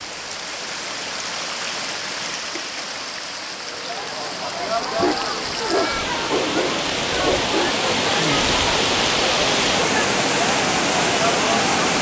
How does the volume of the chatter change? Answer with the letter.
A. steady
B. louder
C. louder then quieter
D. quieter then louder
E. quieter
A.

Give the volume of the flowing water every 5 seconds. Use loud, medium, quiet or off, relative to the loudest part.
medium, loud, loud.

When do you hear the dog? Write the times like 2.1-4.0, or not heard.
5.0-7.8.